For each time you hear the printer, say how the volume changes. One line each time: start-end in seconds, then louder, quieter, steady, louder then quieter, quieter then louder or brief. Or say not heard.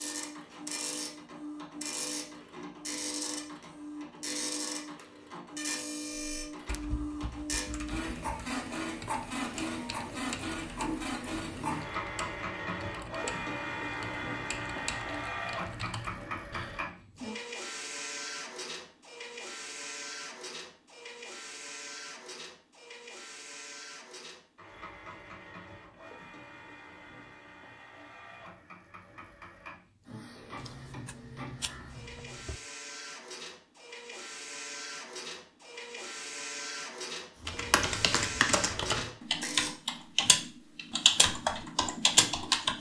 0.0-39.8 quieter then louder.